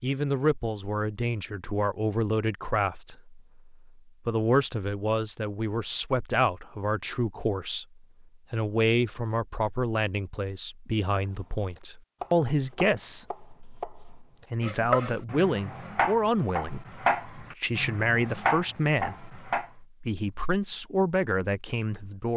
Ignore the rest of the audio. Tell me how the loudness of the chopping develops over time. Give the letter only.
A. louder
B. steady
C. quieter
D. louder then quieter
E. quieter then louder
A.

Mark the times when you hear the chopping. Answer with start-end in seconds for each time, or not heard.
11.2-19.6.